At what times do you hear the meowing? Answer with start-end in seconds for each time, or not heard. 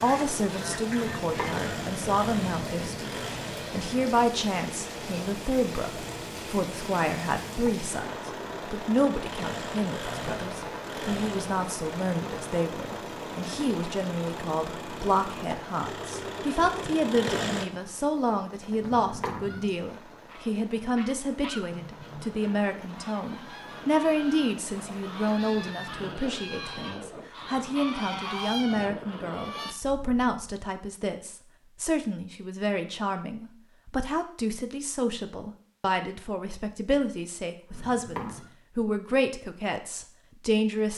0.9-3.0, 18.8-19.8, 37.7-38.5.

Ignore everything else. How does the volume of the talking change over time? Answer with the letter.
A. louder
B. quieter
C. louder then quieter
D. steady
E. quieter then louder
D.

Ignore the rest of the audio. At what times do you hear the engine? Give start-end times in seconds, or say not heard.
0.1-17.6.